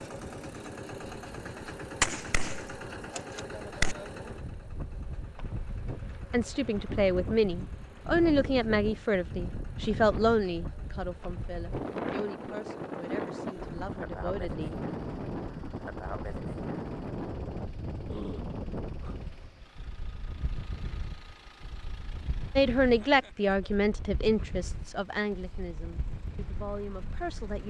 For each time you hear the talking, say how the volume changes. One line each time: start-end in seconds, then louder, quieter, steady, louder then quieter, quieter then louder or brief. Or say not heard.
6.3-14.7 quieter
22.6-27.6 quieter.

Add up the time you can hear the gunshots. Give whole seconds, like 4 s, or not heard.
2 s.